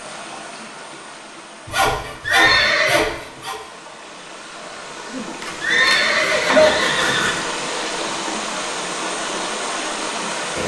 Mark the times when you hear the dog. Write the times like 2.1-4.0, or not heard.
not heard.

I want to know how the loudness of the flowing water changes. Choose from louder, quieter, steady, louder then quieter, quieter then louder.
louder.